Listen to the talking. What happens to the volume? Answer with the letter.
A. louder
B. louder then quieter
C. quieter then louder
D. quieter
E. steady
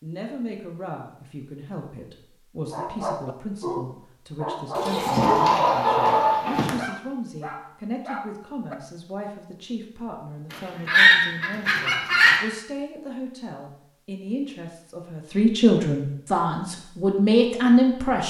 A.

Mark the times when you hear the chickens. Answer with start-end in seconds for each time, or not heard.
4.8-6.7, 10.5-12.4.